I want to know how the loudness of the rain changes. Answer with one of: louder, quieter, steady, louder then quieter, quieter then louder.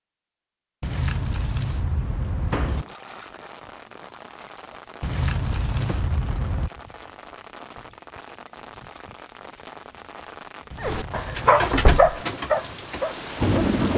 louder.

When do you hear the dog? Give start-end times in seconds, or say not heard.
10.8-13.9.